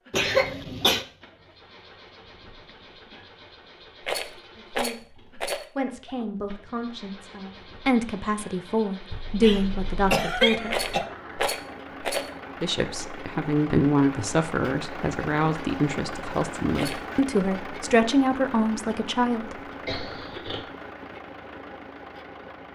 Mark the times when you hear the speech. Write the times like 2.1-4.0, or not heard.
4.5-10.8, 12.6-19.6.